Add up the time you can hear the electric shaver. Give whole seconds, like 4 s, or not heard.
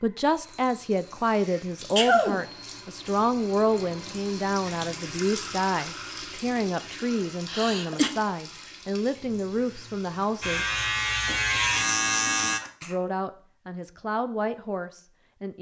2 s.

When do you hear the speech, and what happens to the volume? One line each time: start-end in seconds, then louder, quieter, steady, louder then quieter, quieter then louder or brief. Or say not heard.
0.0-10.7 steady
12.8-15.5 brief.